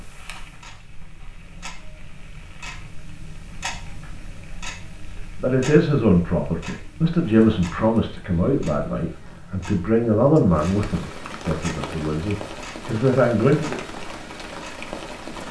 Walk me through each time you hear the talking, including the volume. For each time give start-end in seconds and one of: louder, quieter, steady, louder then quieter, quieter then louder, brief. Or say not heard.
5.4-13.8 steady.